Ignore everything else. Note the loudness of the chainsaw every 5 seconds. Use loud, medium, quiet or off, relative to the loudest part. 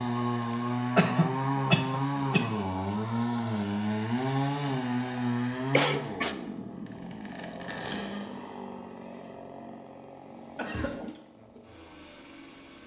loud, medium, quiet.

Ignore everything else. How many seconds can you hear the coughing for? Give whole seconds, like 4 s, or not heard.
3 s.